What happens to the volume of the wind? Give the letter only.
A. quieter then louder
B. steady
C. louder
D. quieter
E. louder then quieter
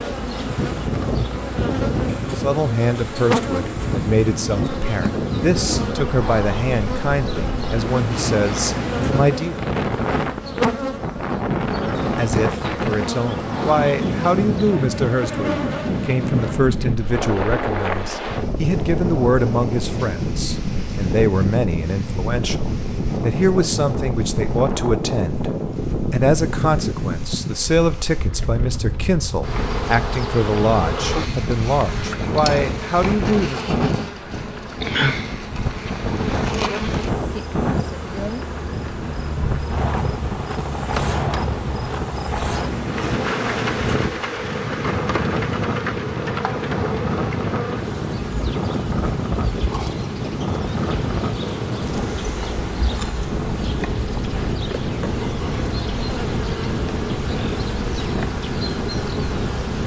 B.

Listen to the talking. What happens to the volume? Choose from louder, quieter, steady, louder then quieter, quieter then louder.
steady.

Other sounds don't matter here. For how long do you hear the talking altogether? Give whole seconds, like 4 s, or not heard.
29 s.